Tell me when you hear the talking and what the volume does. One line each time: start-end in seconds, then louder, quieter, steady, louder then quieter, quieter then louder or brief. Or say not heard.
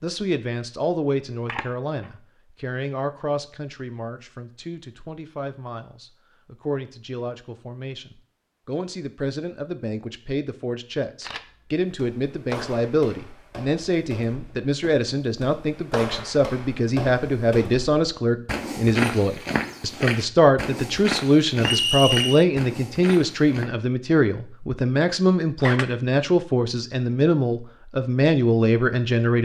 0.0-29.3 louder.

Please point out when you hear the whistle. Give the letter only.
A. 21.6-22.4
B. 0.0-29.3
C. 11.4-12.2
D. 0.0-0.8
A.